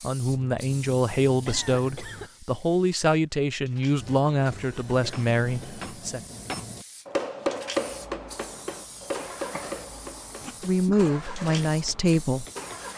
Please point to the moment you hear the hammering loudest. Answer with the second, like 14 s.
8 s.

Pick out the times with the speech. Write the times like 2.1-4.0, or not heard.
0.0-6.2, 10.6-12.4.